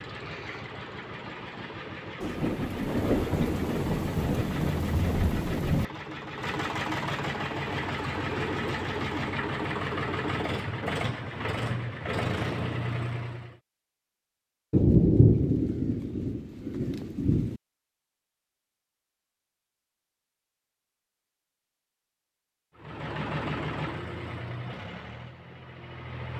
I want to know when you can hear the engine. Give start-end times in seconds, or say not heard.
0.0-13.6, 22.8-26.3.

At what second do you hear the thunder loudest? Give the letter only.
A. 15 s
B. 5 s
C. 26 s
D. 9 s
A.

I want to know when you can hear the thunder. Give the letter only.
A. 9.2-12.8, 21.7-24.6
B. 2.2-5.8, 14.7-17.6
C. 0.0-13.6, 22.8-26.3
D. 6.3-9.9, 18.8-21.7
B.